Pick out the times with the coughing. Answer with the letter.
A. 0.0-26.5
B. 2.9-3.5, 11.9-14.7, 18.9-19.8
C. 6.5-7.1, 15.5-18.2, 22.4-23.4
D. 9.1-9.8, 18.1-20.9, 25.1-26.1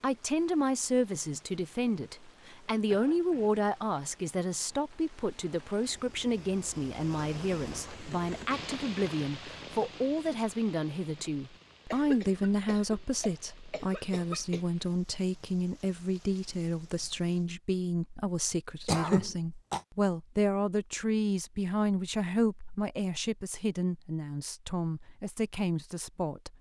B.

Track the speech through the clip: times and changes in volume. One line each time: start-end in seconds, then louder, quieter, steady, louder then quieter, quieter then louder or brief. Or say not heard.
0.0-26.5 steady.